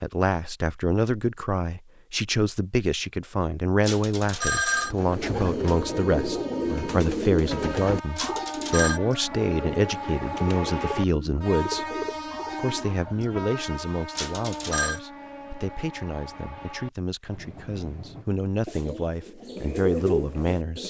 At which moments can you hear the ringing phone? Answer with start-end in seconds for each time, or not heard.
3.8-5.0, 8.2-9.0, 14.2-15.0.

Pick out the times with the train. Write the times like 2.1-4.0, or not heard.
5.5-18.2.